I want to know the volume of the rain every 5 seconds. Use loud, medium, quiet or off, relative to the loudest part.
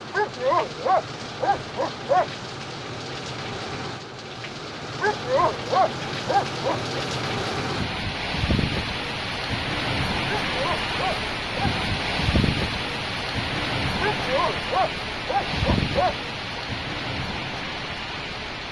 medium, loud, loud, loud.